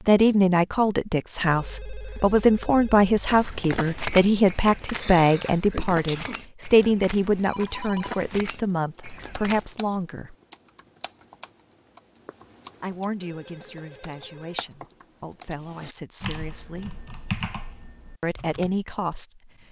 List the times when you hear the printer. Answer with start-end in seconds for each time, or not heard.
not heard.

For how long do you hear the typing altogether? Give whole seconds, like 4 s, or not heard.
11 s.